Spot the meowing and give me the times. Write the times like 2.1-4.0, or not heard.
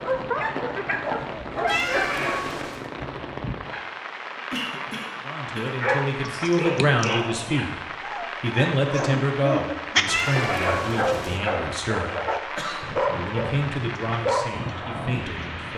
1.6-2.9, 10.1-11.4.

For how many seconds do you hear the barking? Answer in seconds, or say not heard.
12 s.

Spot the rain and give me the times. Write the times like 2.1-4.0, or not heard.
0.0-15.7.